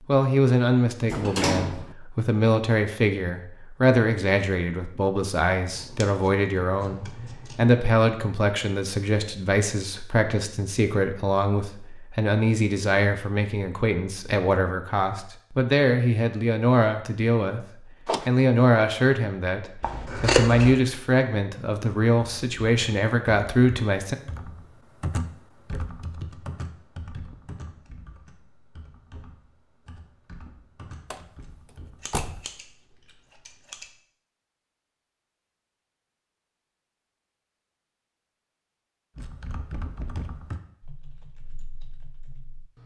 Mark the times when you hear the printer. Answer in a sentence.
You can't hear the printer here.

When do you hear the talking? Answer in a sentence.
You can hear the talking from 0.1 to 17.6 s and from 18.2 to 24.1 s.